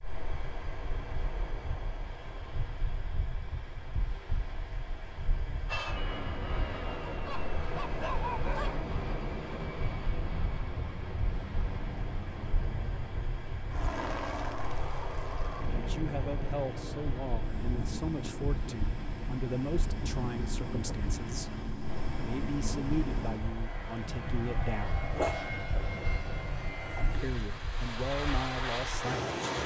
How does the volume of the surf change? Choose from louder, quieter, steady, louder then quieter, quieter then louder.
steady.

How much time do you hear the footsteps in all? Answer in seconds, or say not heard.
not heard.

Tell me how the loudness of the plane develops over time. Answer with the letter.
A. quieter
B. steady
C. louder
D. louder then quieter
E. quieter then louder
B.